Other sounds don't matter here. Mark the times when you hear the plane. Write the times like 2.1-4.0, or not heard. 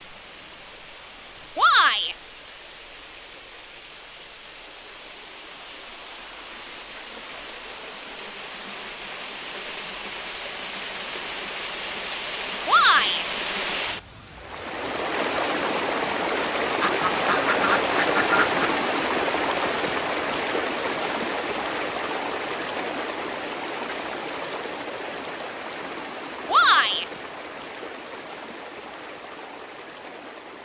not heard.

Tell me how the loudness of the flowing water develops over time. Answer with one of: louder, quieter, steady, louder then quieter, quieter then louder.
louder then quieter.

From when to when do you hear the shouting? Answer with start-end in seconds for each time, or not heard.
1.6-2.1, 12.7-13.2, 26.4-27.1.